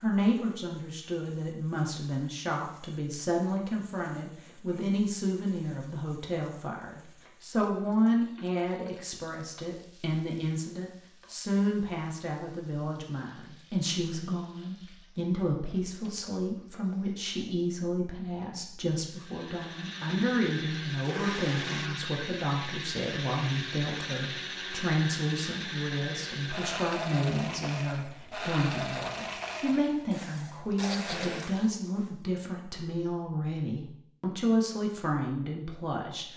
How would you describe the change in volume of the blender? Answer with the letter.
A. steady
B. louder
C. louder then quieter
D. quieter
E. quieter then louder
A.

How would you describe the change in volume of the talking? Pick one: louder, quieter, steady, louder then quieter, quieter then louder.
steady.